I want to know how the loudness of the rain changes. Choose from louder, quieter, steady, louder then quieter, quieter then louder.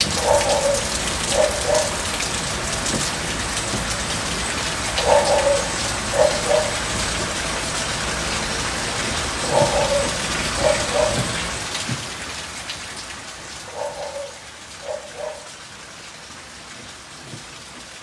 quieter.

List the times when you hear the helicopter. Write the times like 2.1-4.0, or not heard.
0.0-11.8.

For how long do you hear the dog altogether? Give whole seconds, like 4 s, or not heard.
7 s.